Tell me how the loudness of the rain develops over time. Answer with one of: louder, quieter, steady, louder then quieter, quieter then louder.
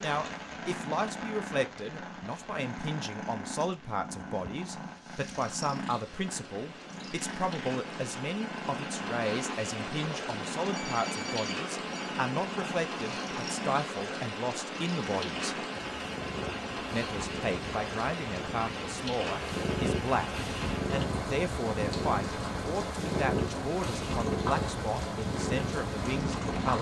louder.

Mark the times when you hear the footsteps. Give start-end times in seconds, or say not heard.
not heard.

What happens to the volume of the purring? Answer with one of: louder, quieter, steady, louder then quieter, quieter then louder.
louder.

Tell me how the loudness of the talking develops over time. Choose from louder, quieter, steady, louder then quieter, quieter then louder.
steady.